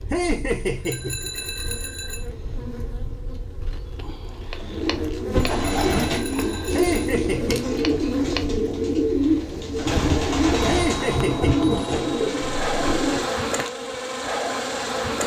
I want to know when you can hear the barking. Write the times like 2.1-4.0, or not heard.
not heard.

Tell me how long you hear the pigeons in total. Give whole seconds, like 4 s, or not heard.
9 s.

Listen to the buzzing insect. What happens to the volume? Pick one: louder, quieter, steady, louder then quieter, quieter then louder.
louder.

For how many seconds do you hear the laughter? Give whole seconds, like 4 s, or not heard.
3 s.